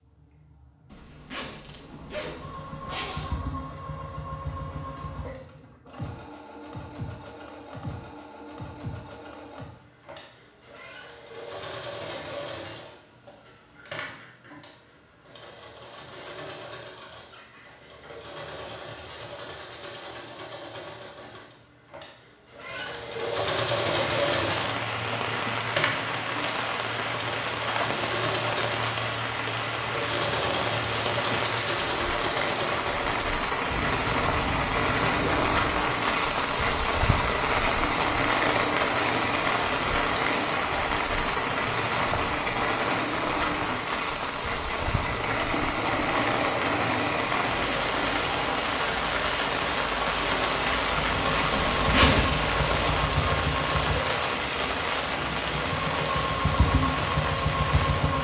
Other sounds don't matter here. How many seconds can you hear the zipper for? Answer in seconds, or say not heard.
5 s.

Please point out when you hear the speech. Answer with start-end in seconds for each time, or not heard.
not heard.